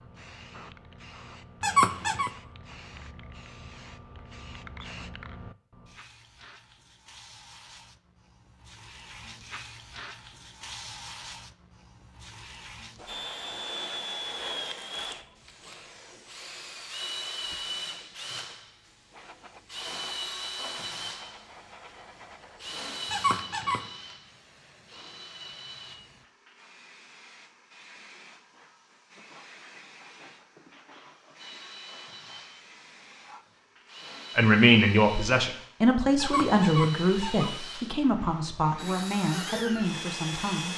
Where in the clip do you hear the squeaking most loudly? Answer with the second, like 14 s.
2 s.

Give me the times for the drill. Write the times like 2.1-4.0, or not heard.
13.1-26.0, 31.4-40.7.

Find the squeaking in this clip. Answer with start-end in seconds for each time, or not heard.
1.6-2.3, 23.1-23.9, 36.1-37.5.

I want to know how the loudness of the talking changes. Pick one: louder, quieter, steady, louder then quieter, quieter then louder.
quieter.